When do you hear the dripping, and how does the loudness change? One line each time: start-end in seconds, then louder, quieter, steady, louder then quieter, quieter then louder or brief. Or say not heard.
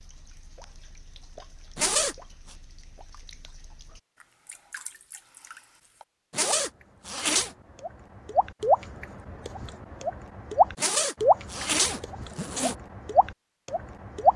0.0-14.3 louder.